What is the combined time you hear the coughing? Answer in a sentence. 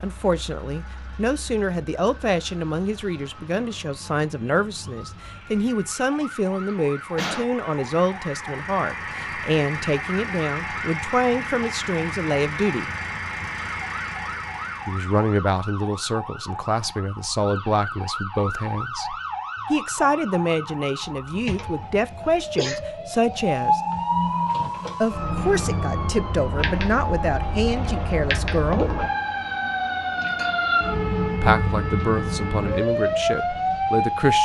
You can hear the coughing for 2 seconds altogether.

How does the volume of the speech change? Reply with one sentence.
The volume of the speech stays about the same.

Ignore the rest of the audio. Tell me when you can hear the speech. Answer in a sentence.
You can hear the speech from 0.0 to 12.9 s, from 14.8 to 23.8 s, from 25.0 to 28.9 s and from 31.4 to 34.4 s.